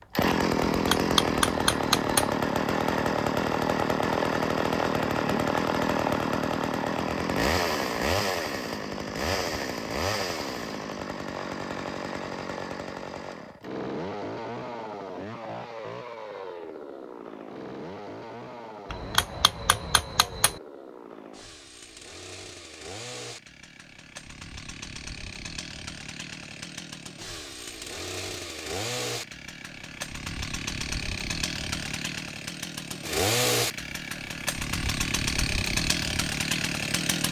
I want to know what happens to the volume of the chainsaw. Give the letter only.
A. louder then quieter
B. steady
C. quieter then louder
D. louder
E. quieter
C.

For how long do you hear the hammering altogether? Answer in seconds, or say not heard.
3 s.